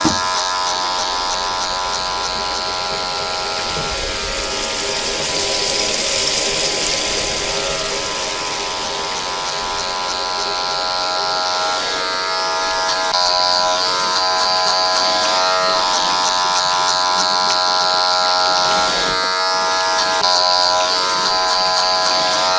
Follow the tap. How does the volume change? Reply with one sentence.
The volume of the tap goes up, then down.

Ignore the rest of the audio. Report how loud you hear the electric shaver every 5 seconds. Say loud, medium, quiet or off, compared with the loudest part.
medium, medium, loud, loud, loud.